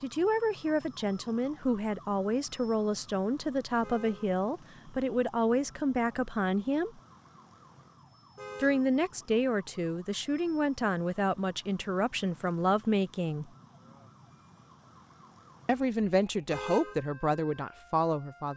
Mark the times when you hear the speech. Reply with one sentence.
The speech can be heard from 0.0 to 7.0 s, from 8.6 to 13.5 s and from 15.7 to 18.5 s.